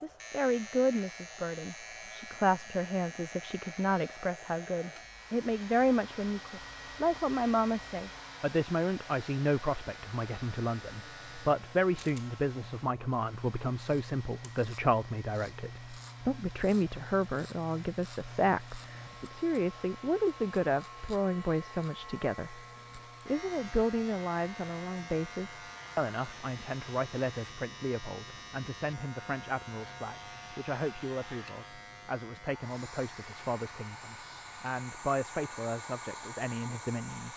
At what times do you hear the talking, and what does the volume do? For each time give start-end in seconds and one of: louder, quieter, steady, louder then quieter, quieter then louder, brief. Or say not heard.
0.0-37.3 quieter.